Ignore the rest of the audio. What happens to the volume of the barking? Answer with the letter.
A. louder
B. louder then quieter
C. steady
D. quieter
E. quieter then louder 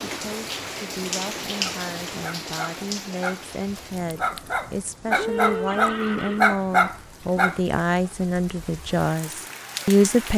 A.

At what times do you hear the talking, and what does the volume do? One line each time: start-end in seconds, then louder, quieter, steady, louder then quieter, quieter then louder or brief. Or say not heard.
0.1-10.3 louder.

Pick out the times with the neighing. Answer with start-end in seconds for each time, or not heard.
5.1-6.5.